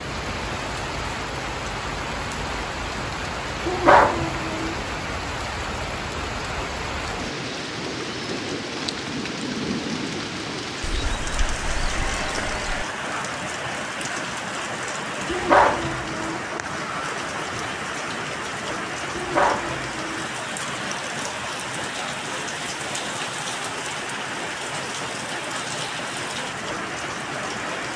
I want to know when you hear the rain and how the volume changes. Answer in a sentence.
The rain can be heard from 0.0 to 27.9 s, at a steady volume.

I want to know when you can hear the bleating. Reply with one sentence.
You can hear the bleating from 10.8 to 12.8 s.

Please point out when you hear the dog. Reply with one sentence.
You can hear the dog from 3.6 to 4.8 s, from 15.3 to 16.4 s and from 19.1 to 20.3 s.